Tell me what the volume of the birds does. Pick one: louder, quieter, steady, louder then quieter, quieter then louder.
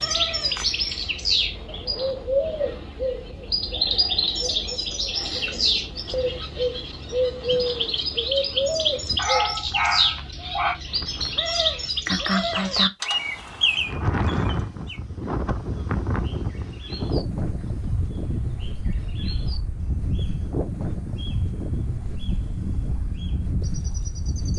quieter.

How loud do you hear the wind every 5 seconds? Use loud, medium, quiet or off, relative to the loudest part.
quiet, quiet, loud, loud, loud.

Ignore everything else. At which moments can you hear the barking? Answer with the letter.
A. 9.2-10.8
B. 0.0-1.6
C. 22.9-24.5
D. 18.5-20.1
A.